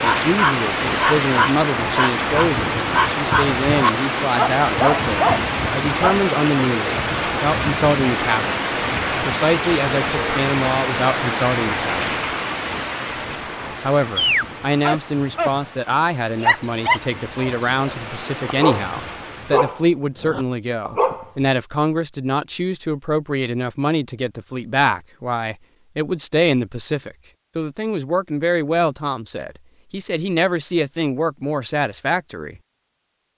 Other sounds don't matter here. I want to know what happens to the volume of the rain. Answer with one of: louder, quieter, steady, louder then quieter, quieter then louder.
quieter.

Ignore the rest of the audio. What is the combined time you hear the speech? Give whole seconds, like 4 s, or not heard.
30 s.